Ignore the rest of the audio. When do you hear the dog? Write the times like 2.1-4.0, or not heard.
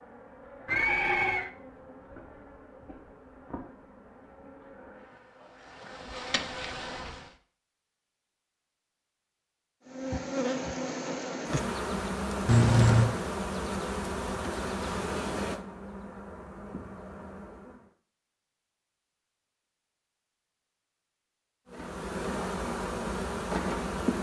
not heard.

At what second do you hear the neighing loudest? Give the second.
13 s.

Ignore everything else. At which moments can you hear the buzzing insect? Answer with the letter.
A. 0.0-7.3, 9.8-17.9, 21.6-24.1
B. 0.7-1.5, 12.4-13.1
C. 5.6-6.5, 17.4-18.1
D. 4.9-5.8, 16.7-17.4
A.